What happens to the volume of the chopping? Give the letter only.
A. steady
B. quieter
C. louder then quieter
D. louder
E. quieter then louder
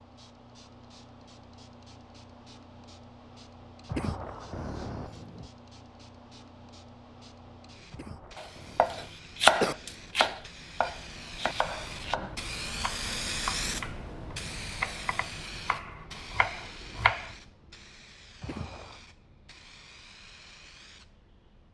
B.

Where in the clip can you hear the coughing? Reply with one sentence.
You can hear the coughing from 3.9 to 5.5 s, from 7.9 to 9.8 s and from 18.4 to 19.0 s.